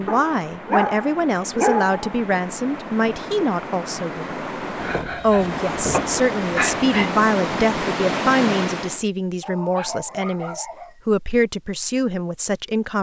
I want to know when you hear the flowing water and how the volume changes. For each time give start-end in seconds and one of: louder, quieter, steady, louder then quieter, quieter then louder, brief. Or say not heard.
0.0-9.1 louder.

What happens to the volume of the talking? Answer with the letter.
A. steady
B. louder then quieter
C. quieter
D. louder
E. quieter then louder
A.